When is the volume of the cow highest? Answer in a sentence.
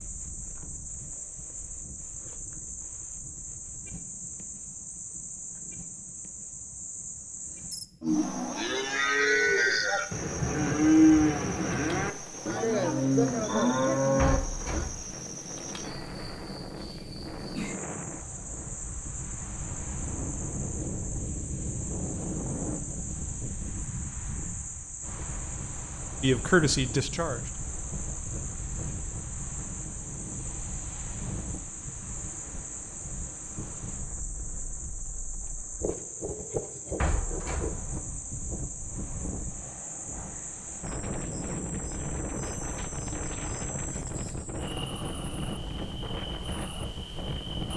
The loudest moment of the cow is at 11 seconds.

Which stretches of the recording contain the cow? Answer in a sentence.
You can hear the cow from 8.0 to 14.9 s.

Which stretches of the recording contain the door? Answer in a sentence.
You can hear the door from 14.2 to 15.2 s and from 37.0 to 38.0 s.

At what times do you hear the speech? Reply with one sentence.
You can hear the speech from 26.2 to 27.6 s.